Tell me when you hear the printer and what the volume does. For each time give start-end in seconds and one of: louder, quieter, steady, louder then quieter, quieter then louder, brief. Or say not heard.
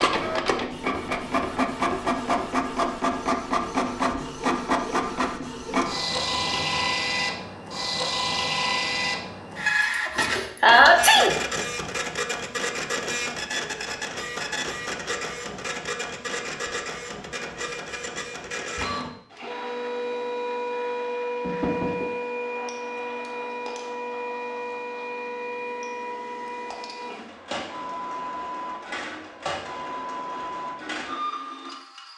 0.0-32.1 quieter.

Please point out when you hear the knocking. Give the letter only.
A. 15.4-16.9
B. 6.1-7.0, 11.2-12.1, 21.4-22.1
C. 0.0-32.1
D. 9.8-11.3
B.